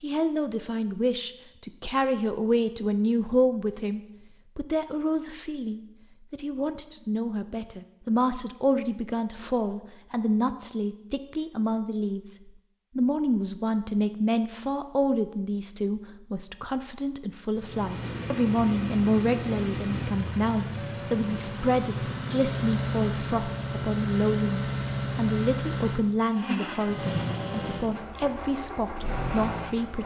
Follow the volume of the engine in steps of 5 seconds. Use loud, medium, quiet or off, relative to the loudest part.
off, off, off, loud, loud, loud.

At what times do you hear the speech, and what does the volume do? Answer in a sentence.
You can hear the speech from 0.0 to 30.0 s, at a steady volume.